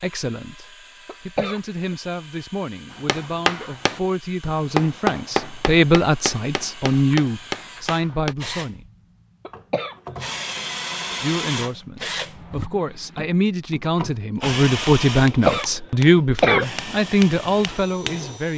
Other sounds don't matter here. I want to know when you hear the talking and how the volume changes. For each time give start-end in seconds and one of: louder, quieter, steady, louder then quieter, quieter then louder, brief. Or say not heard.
0.0-8.8 louder
11.2-18.5 louder.